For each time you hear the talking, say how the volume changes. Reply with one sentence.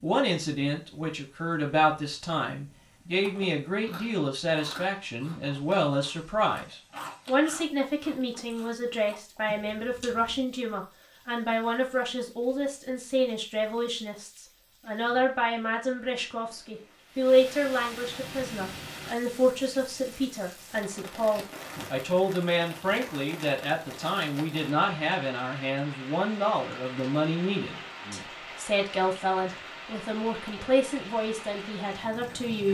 You can hear the talking from 0.0 to 32.6 s, at a steady volume.